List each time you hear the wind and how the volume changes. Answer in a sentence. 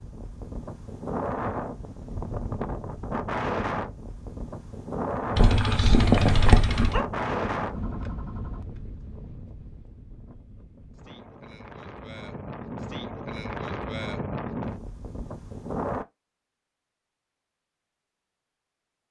You can hear the wind from 0.0 to 16.1 s, getting quieter then louder.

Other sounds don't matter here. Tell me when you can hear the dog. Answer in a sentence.
The dog can be heard from 5.3 to 7.0 s.